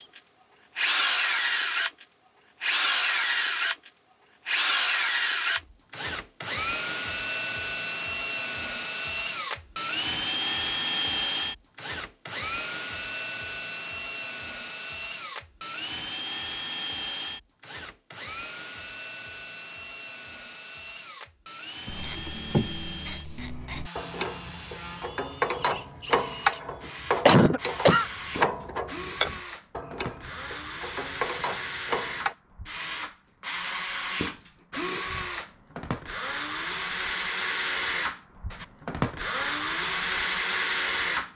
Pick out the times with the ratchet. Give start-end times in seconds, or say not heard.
21.9-32.4.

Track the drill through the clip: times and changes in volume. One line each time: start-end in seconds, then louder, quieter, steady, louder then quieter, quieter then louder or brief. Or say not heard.
0.0-41.3 quieter then louder.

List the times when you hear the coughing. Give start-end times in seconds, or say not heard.
27.2-28.1.